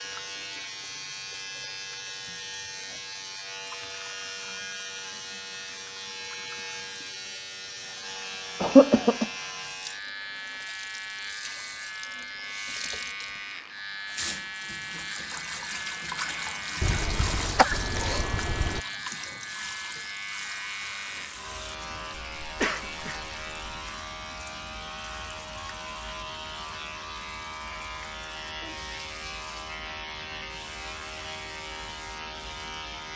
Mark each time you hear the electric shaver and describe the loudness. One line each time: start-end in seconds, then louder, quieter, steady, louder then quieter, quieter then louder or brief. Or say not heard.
0.0-33.1 steady.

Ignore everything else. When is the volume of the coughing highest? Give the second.
9 s.